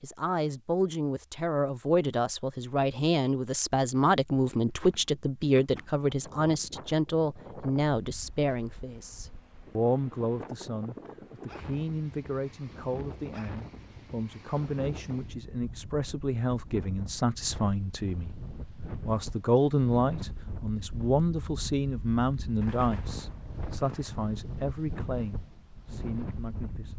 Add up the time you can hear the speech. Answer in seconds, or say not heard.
27 s.